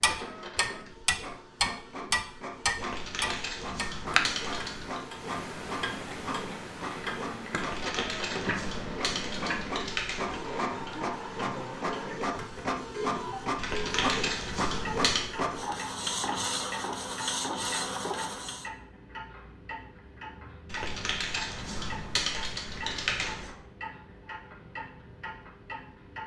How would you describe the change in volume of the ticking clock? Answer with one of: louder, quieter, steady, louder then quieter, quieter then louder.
quieter.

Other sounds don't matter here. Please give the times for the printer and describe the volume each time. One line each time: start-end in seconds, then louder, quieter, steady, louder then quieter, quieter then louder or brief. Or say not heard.
0.0-18.7 louder.